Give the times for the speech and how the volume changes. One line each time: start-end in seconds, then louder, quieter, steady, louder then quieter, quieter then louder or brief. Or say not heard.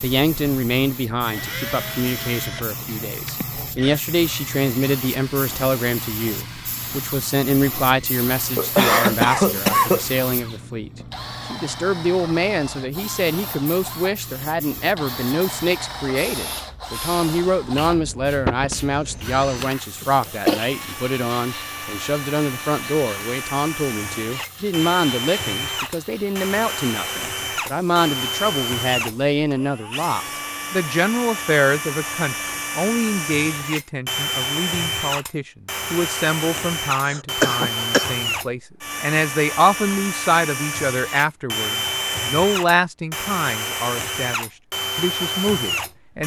0.0-46.2 steady.